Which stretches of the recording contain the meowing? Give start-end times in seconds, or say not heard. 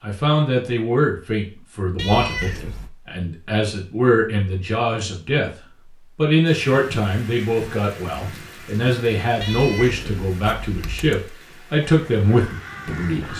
1.9-2.9, 9.4-11.2.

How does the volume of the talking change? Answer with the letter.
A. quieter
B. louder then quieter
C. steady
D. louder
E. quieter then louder
C.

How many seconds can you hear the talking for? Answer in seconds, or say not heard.
13 s.